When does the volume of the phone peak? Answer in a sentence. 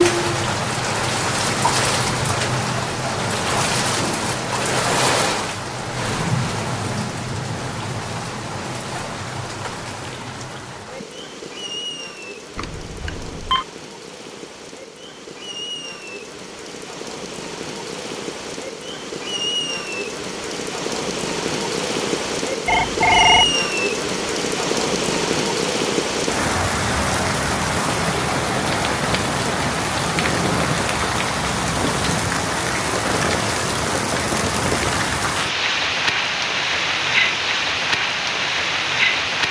The loudest moment of the phone is at 23 seconds.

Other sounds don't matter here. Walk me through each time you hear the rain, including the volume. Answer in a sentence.
You can hear the rain from 0.0 to 39.4 s, getting quieter then louder.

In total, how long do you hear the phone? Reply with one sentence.
The phone can be heard for 2 seconds in total.